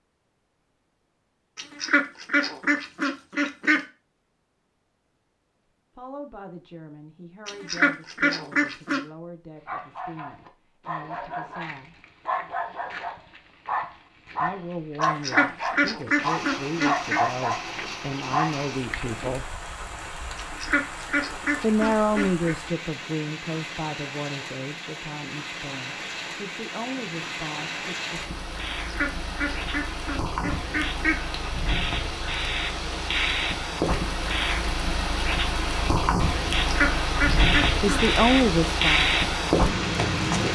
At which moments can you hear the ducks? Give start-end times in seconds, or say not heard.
1.6-3.8, 7.5-9.0, 15.0-17.2, 20.4-22.6, 28.9-31.4, 36.6-38.0.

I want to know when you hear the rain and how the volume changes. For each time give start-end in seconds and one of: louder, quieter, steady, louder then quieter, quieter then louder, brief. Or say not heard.
16.1-40.5 louder.